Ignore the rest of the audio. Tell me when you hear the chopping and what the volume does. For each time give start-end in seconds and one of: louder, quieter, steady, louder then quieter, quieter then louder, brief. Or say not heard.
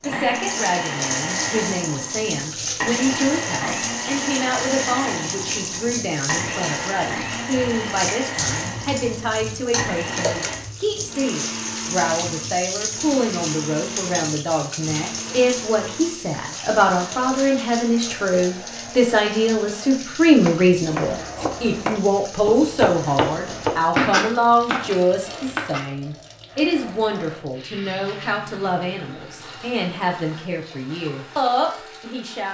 20.3-25.9 louder then quieter.